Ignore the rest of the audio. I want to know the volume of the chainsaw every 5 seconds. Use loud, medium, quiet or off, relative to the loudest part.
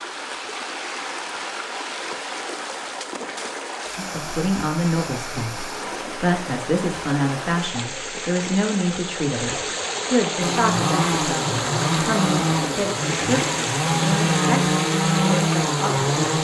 off, off, loud, loud.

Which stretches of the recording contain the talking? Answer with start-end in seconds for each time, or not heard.
4.0-16.4.